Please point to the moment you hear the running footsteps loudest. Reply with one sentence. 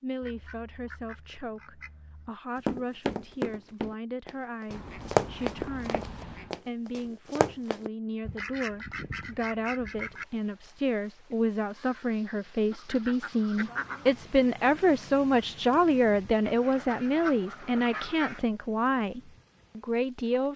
The volume of the running footsteps peaks at 5 seconds.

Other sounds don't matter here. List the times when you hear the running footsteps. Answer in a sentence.
You can hear the running footsteps from 2.6 to 7.9 s.